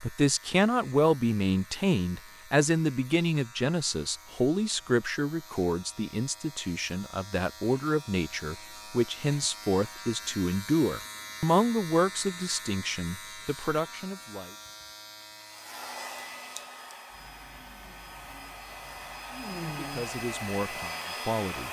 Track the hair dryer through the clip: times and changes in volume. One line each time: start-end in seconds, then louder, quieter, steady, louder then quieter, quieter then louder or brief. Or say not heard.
15.5-21.6 quieter then louder.